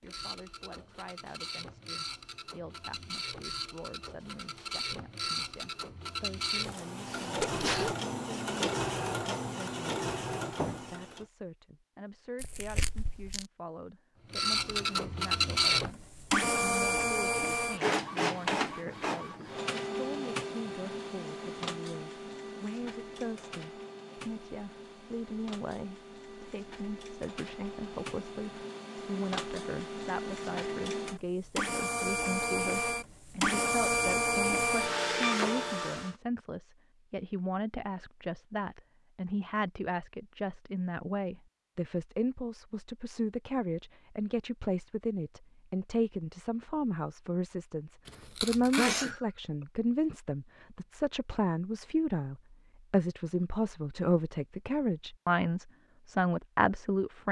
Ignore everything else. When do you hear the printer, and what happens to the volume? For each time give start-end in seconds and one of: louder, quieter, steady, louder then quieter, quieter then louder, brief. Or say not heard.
0.0-11.2 louder
14.3-36.1 quieter then louder.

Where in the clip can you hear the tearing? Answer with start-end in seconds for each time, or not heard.
12.3-13.4, 48.0-49.1.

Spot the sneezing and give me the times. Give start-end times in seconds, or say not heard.
7.0-8.0, 48.8-49.2.